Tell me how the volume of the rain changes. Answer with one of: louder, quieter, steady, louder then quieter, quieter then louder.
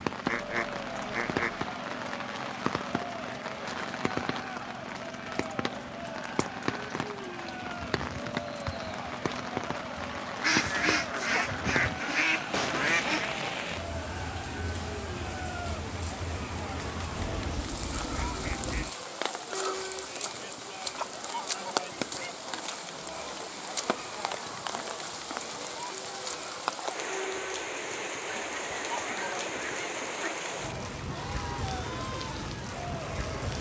steady.